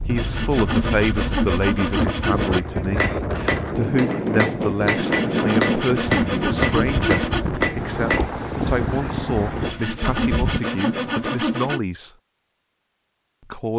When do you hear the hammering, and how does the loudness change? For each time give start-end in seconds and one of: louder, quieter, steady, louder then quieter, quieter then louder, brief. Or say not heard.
2.5-8.4 steady.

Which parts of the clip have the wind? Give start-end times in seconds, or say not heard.
0.0-10.6.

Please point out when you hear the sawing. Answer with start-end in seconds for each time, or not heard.
0.1-2.6, 4.8-7.5, 9.6-11.8.